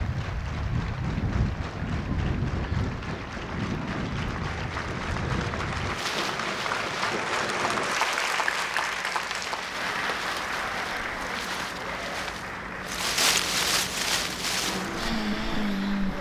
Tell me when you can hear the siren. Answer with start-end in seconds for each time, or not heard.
not heard.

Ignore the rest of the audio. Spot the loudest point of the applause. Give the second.
8 s.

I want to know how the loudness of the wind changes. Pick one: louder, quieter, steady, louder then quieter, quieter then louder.
quieter then louder.